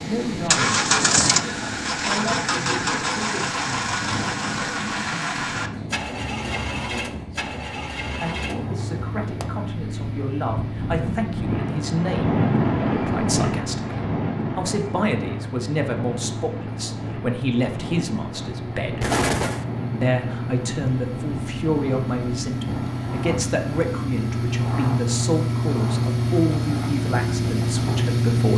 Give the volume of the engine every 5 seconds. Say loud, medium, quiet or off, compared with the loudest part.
loud, medium, medium, medium, medium, loud.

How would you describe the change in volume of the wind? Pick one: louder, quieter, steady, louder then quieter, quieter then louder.
louder then quieter.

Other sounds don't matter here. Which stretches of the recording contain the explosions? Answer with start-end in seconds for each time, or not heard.
19.0-19.6.